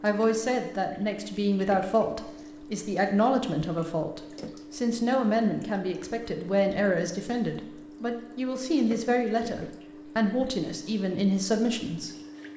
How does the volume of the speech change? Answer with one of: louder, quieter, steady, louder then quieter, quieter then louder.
steady.